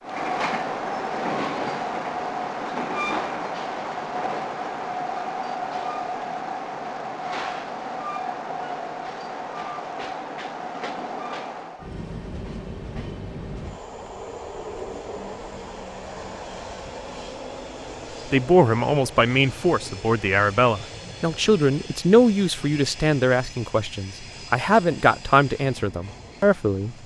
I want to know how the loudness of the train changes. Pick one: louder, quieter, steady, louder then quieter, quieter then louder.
quieter.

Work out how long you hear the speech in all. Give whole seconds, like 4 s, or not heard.
9 s.